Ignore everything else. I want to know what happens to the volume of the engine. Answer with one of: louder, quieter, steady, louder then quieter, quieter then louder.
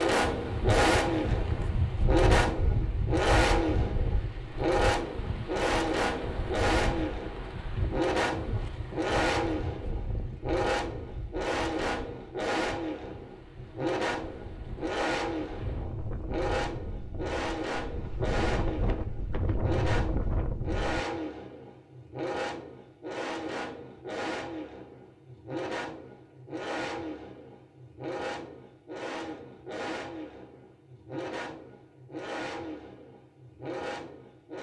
quieter.